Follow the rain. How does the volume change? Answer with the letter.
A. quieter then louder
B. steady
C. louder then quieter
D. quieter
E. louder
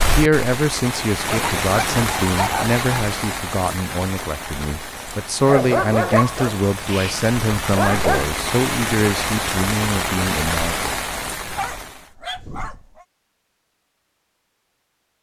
A.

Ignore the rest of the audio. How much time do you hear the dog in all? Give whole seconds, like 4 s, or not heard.
6 s.